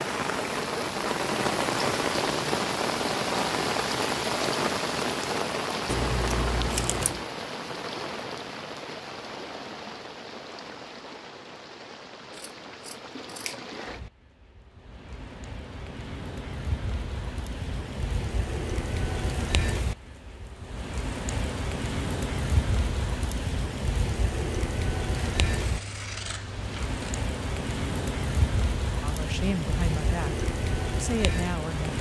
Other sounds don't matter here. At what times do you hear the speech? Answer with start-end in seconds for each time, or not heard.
29.0-31.9.